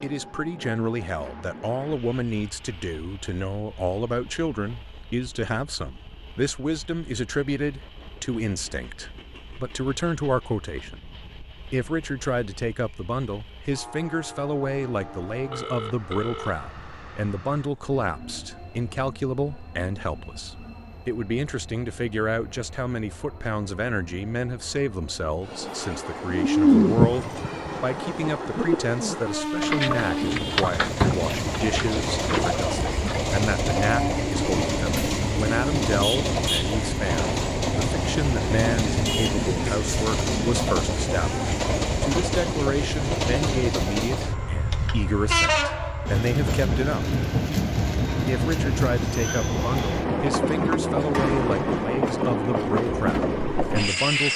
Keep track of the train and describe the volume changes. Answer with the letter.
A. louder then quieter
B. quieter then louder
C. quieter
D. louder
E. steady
D.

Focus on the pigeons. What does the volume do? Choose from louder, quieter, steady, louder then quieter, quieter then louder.
quieter.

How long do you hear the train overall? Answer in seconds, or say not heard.
54 s.